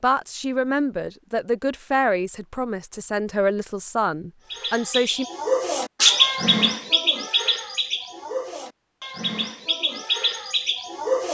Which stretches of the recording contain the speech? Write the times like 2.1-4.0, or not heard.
0.0-5.2.